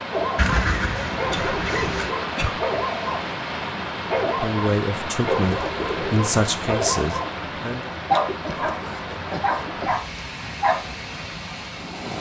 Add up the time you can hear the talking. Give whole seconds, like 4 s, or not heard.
4 s.